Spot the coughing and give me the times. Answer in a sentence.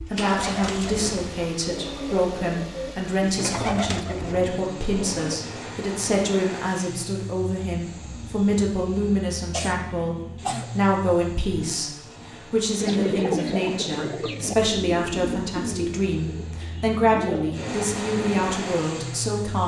You can hear the coughing from 9.5 to 10.7 s.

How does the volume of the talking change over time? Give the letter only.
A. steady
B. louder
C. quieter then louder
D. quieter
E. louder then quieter
A.